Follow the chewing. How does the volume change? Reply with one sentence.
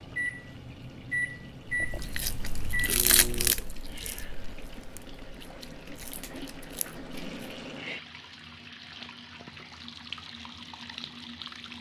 The volume of the chewing goes up, then down.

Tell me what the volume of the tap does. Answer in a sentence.
The loudness of the tap goes up.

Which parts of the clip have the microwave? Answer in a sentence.
You can hear the microwave from 0.0 to 3.5 s.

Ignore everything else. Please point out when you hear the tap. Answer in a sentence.
You can hear the tap from 0.0 to 11.7 s.